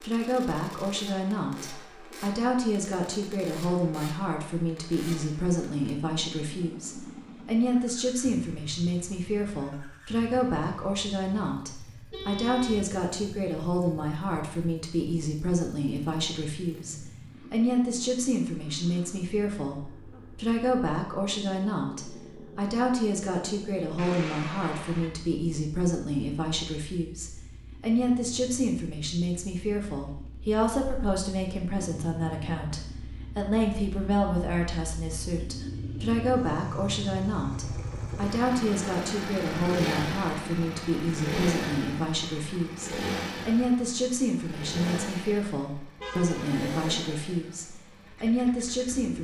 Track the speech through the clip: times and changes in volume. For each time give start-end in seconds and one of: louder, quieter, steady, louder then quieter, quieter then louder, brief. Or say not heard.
0.0-49.1 steady.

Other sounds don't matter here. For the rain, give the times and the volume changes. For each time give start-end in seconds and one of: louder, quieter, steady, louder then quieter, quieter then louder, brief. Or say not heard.
not heard.